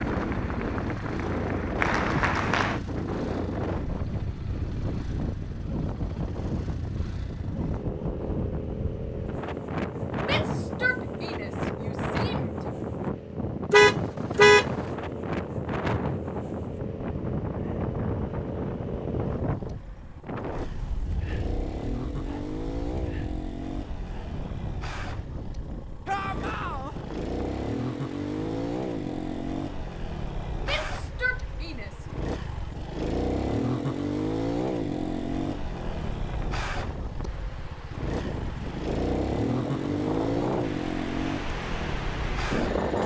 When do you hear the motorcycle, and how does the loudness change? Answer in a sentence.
The motorcycle can be heard from 0.0 to 43.0 s, getting louder.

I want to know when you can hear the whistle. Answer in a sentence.
The whistle can't be heard in this clip.